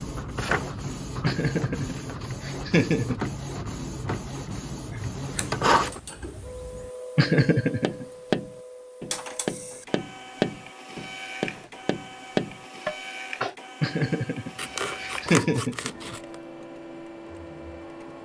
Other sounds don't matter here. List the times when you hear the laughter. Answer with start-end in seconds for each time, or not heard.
1.2-3.3, 7.2-8.1, 13.8-16.1.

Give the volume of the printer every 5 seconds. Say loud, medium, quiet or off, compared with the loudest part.
loud, loud, medium, medium.